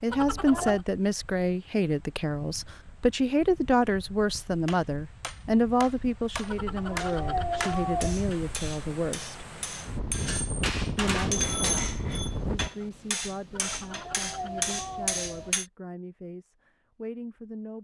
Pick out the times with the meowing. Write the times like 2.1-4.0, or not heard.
0.1-0.8, 6.5-8.2, 13.5-15.5.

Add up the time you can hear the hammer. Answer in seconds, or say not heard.
11 s.